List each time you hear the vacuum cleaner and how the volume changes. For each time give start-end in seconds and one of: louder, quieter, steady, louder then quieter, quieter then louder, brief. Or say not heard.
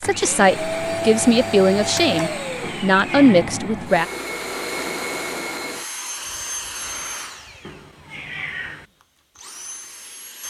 0.0-10.4 quieter.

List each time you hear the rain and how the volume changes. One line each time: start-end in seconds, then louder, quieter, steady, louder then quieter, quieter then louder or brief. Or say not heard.
not heard.